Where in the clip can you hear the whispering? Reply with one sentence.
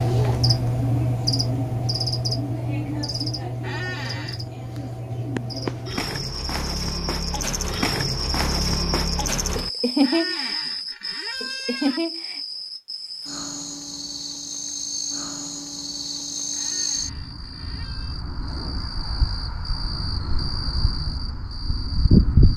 You can't hear the whispering here.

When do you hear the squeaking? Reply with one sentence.
The squeaking can be heard from 3.6 to 4.4 s, from 10.0 to 12.0 s and from 16.6 to 18.2 s.